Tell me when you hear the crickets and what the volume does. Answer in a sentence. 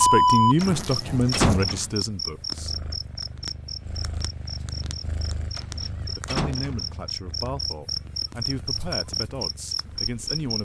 You can hear the crickets from 0.0 to 10.5 s, getting quieter then louder.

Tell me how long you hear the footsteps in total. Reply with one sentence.
The footsteps can't be heard in this clip.